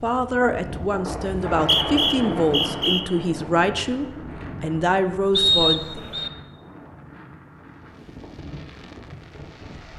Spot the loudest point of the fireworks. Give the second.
9 s.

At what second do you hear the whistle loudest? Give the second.
6 s.